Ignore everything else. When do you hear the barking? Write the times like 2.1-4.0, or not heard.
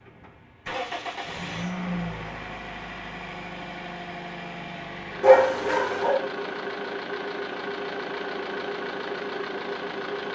5.2-6.2.